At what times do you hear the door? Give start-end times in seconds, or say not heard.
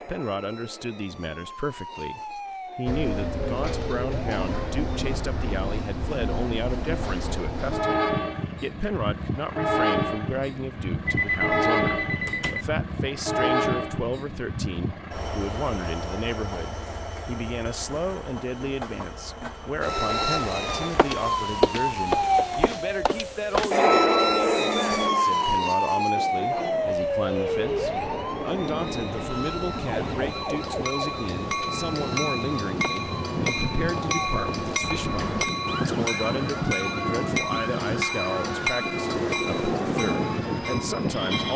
12.2-12.7, 34.8-35.5.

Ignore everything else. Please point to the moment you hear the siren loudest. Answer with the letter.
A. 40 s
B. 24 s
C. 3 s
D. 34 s
B.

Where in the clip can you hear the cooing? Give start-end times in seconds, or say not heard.
not heard.